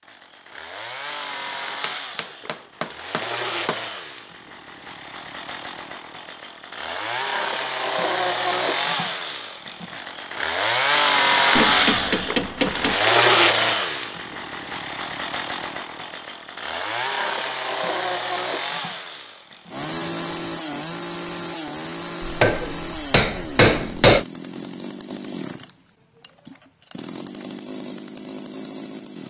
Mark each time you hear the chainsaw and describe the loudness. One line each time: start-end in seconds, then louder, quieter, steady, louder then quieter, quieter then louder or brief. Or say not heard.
0.0-29.2 louder then quieter.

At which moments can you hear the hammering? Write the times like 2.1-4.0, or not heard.
1.8-3.8, 11.6-12.9, 22.2-24.2.